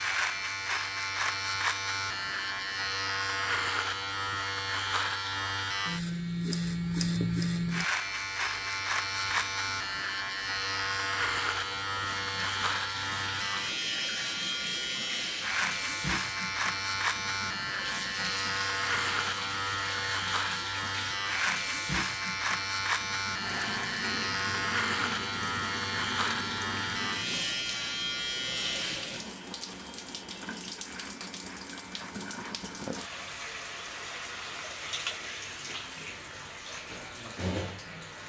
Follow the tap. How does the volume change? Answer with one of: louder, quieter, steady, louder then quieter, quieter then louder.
louder.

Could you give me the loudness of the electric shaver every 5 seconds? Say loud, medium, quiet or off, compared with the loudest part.
loud, loud, loud, loud, loud, loud, quiet, quiet.